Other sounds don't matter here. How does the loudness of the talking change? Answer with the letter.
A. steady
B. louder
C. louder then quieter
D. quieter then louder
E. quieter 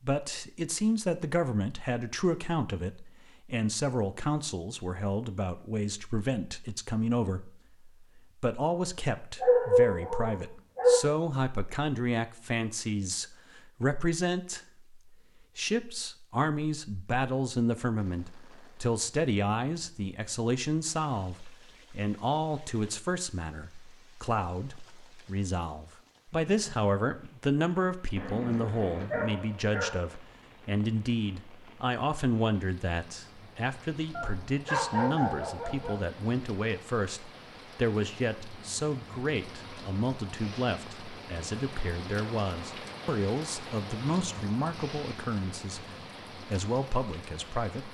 A.